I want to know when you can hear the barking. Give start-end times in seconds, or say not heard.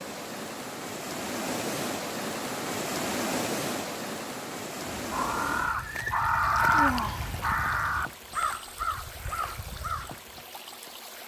not heard.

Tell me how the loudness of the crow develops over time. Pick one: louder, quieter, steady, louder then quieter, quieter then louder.
louder then quieter.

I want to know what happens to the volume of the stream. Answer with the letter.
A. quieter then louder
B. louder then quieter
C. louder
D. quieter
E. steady
D.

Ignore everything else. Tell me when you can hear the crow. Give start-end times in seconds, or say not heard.
4.8-10.2.